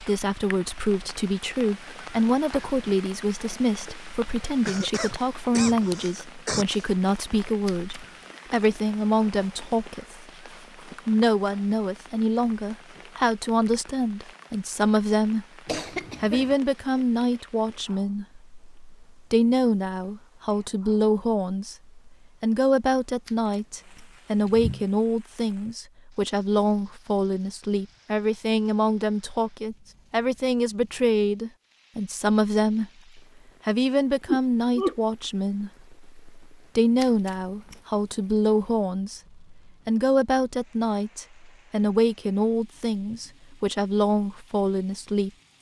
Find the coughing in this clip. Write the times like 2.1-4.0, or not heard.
4.7-6.7, 15.7-16.6, 34.2-35.0.